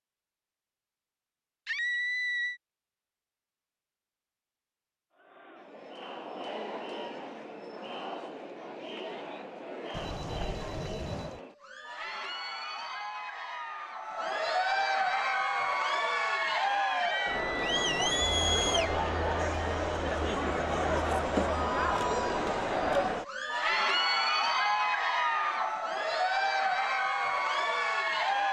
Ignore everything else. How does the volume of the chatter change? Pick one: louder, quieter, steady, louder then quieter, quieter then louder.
louder.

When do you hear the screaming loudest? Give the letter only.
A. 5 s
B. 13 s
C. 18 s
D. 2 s
D.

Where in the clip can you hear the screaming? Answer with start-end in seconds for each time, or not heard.
1.6-2.6, 16.9-18.9.